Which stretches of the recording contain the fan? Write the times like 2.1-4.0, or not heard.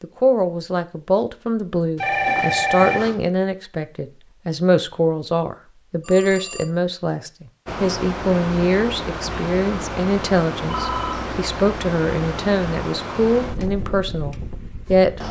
7.7-15.2.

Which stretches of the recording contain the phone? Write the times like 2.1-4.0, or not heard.
2.0-3.1, 6.0-6.7, 10.7-11.3.